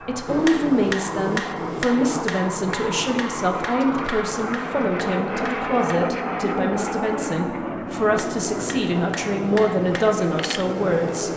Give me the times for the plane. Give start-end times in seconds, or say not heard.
0.0-11.3.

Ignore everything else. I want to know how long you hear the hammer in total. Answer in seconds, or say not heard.
9 s.